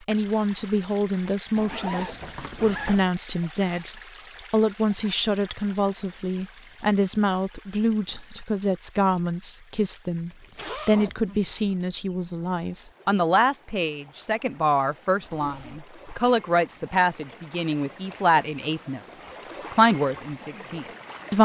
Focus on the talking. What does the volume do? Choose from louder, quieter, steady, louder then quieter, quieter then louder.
steady.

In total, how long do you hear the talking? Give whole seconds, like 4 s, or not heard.
21 s.